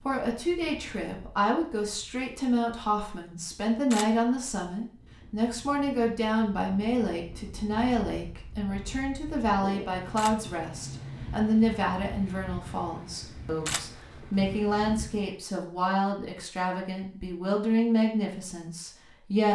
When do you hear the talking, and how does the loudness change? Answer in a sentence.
You can hear the talking from 0.0 to 19.5 s, at a steady volume.